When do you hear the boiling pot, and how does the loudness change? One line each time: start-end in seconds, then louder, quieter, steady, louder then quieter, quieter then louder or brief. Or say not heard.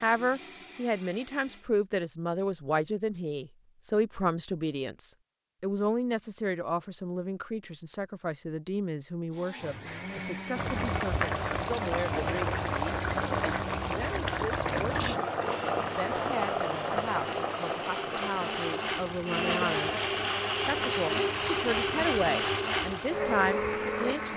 10.6-24.3 quieter.